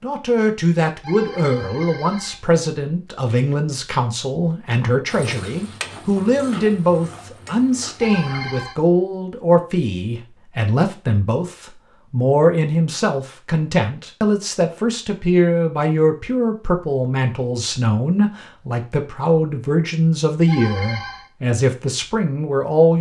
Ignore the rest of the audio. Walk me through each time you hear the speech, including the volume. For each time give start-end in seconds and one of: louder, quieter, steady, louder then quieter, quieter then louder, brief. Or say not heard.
0.0-22.9 steady.